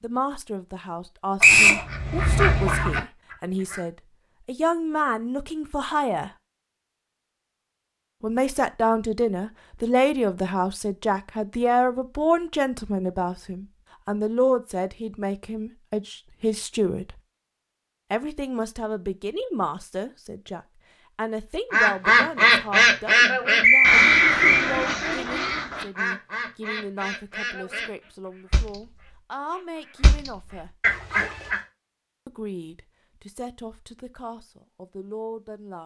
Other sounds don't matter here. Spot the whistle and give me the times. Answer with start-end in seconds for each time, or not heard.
1.4-1.9, 23.6-24.6.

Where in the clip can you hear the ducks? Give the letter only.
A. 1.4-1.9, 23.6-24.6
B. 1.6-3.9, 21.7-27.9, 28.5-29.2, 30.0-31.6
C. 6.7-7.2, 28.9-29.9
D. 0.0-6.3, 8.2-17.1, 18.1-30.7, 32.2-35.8
B.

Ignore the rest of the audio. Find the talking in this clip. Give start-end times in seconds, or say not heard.
0.0-6.3, 8.2-17.1, 18.1-30.7, 32.2-35.8.